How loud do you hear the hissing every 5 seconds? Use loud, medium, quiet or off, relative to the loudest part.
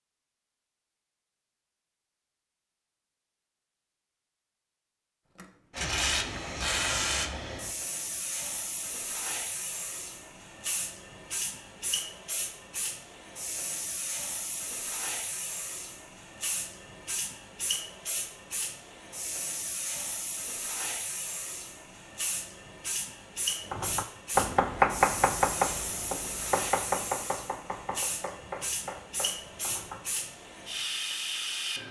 off, loud, medium, medium, medium, medium, loud.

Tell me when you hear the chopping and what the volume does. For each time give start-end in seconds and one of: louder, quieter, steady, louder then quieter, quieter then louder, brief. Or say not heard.
23.7-30.0 quieter.